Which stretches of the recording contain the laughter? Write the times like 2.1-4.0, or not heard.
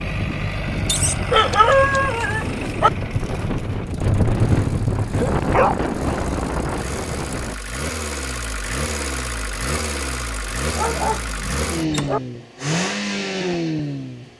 not heard.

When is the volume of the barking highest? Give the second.
2 s.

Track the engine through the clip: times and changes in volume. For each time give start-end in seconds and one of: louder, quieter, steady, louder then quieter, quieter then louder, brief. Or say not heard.
0.0-14.3 quieter then louder.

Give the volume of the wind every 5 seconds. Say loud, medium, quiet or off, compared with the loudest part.
loud, loud, off.